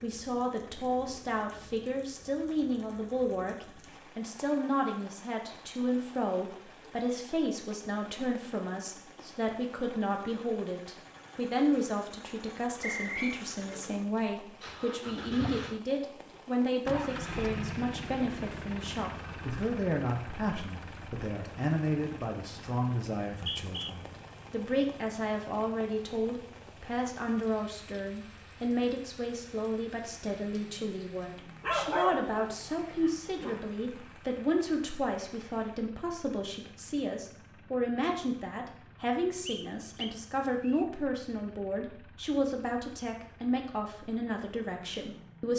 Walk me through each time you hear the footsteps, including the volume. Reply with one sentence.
You can't hear the footsteps here.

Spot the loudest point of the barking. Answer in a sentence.
The loudest moment of the barking is at 32 seconds.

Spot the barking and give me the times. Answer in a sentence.
You can hear the barking from 31.6 to 33.6 s.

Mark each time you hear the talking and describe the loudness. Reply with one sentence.
You can hear the talking from 0.0 to 45.5 s, at a steady volume.